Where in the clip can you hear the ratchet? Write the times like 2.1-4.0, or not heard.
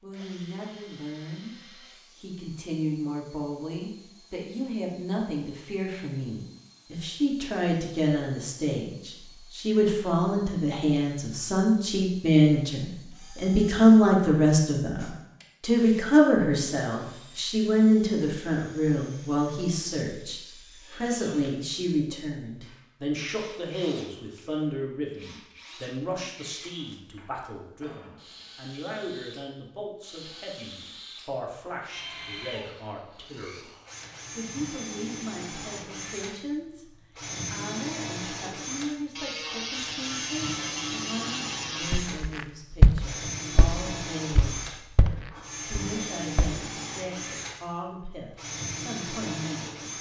39.1-42.1.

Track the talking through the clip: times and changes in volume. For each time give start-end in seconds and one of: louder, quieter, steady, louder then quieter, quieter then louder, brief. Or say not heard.
0.0-1.6 brief
2.1-33.7 louder then quieter
34.4-49.9 steady.